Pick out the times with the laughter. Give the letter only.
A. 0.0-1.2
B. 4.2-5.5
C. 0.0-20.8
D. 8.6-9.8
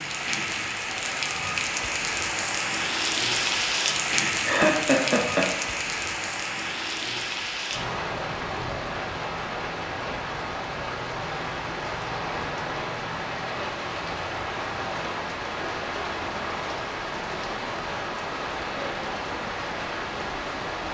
B.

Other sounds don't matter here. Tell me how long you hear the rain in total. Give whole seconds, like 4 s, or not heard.
21 s.